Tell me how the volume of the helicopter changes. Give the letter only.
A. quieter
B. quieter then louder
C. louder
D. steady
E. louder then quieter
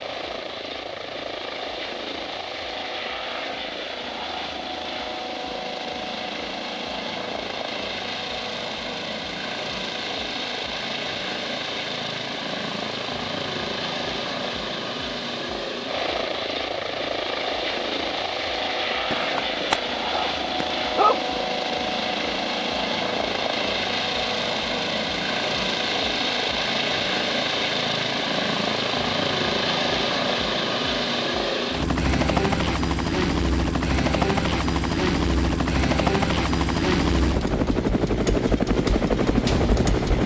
C.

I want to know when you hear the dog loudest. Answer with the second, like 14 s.
21 s.